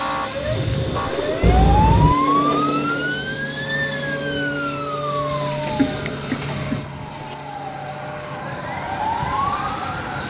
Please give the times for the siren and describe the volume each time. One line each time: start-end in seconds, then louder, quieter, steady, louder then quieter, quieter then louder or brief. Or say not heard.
0.0-10.2 quieter then louder.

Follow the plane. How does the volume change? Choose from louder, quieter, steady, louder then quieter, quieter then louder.
quieter.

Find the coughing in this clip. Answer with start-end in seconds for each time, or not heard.
1.4-2.1, 5.8-6.8.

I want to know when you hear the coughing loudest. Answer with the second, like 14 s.
2 s.